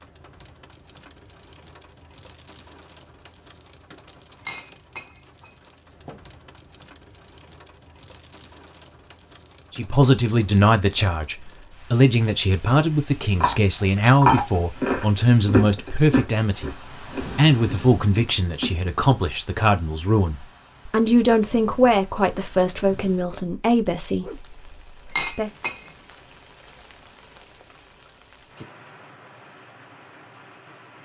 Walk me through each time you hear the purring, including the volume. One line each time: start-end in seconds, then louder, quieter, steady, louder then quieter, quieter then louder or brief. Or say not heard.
not heard.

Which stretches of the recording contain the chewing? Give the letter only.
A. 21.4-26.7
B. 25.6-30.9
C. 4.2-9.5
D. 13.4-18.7
D.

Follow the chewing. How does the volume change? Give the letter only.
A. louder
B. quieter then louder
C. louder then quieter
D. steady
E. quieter
E.